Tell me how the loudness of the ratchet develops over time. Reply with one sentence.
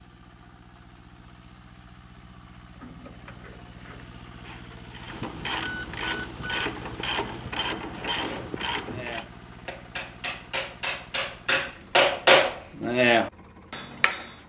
The loudness of the ratchet goes up.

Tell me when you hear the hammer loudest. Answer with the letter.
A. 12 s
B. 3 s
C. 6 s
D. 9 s
A.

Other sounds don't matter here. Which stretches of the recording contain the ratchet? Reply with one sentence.
The ratchet can be heard from 2.8 to 9.2 s.